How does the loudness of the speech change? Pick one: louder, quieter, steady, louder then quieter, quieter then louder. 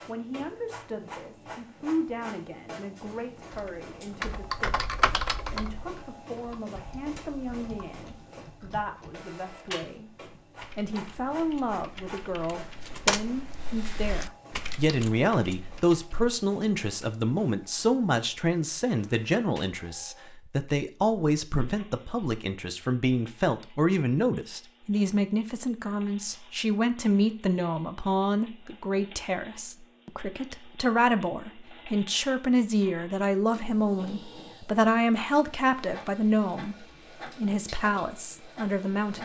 louder.